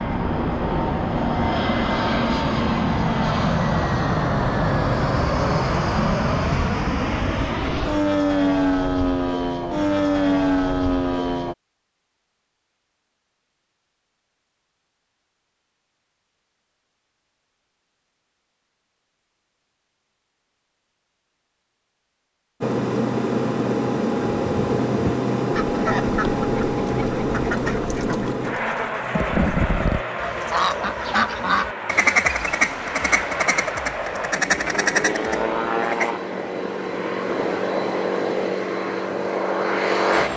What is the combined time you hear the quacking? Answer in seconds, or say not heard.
12 s.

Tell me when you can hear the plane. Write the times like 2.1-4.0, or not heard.
0.0-11.6, 22.6-40.3.